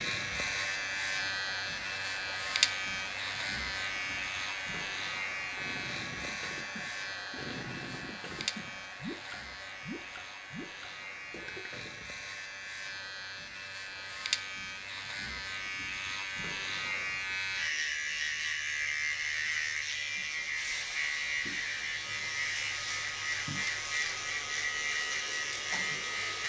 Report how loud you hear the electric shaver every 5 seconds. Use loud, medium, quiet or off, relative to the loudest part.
loud, medium, medium, loud, loud, loud.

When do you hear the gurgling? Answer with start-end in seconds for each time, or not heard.
5.5-12.1.